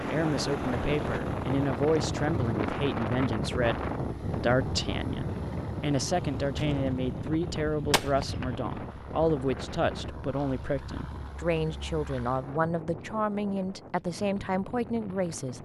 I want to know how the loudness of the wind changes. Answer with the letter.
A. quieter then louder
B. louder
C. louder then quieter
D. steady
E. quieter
E.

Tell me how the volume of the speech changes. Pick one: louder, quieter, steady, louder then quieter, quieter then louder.
steady.